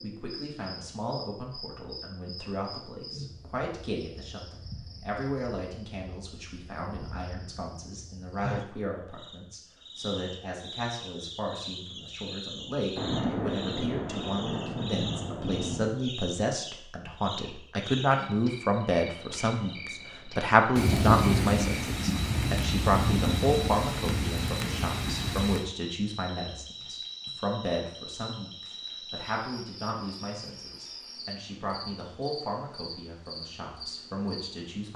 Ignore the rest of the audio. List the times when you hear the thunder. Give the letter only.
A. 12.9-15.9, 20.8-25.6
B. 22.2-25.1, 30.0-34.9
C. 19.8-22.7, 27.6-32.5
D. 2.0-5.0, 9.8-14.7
A.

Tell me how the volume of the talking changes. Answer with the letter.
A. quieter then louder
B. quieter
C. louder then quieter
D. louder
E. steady
C.